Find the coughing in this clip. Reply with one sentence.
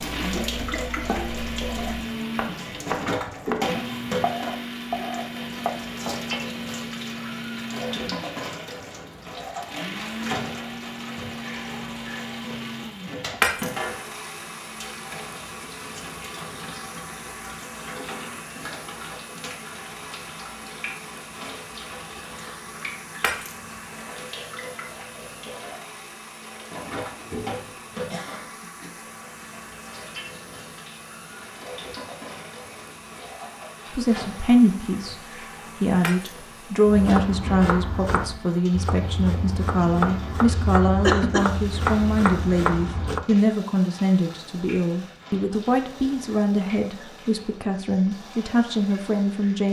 The coughing can be heard from 0.2 to 1.0 s, from 27.1 to 29.1 s and from 41.0 to 41.5 s.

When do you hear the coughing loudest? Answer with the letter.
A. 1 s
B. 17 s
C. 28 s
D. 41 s
D.